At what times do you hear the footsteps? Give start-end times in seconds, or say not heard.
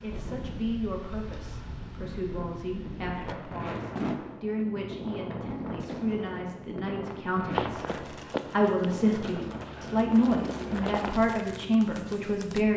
7.5-11.2.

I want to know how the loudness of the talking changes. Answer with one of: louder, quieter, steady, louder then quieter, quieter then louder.
louder.